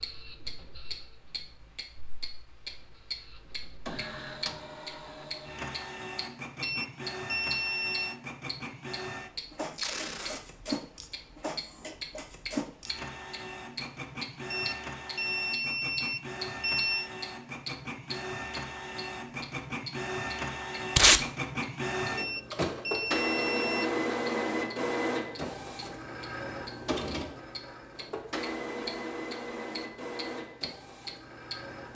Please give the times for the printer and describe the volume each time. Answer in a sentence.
The printer can be heard from 0.0 to 31.9 s, getting louder then quieter.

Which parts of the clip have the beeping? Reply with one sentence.
The beeping can be heard from 6.6 to 8.2 s, from 14.5 to 17.1 s and from 22.1 to 23.9 s.